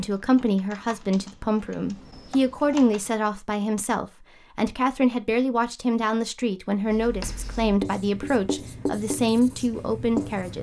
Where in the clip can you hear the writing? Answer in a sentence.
You can hear the writing from 6.8 to 10.5 s.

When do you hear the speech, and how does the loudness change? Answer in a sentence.
You can hear the speech from 0.0 to 10.5 s, at a steady volume.